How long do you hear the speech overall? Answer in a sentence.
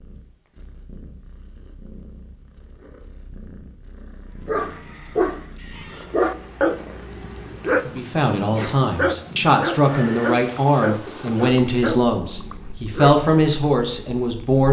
You can hear the speech for 7 seconds altogether.